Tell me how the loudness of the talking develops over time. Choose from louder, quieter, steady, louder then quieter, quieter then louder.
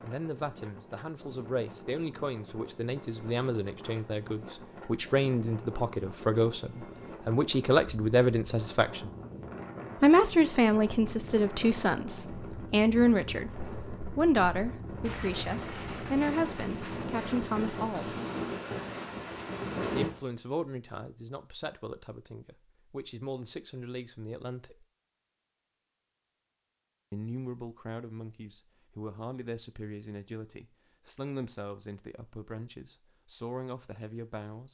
louder then quieter.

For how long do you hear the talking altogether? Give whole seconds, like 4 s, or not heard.
30 s.